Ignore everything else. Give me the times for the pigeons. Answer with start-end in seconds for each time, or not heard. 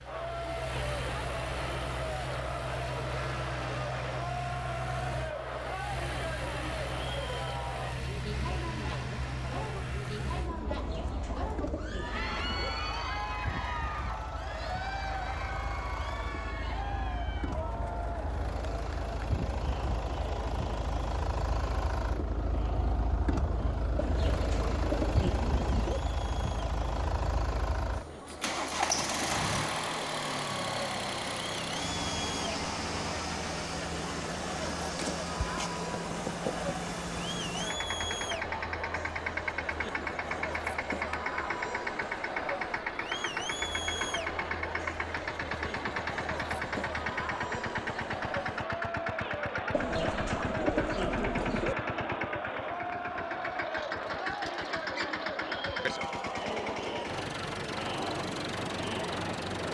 10.7-12.7, 23.9-26.0, 49.7-51.8.